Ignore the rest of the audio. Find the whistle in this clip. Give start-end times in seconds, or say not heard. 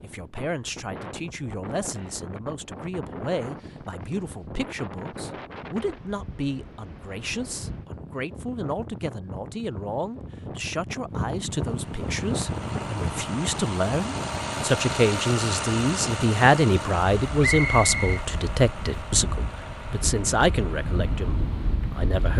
17.4-18.2.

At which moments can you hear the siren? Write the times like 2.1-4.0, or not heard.
not heard.